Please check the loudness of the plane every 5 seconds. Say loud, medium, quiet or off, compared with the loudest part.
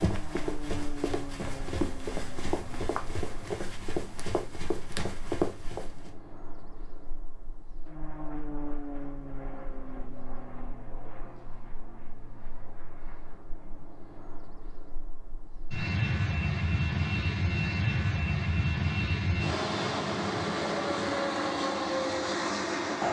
quiet, quiet, quiet, loud, loud.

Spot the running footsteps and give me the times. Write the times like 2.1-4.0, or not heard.
0.0-6.2.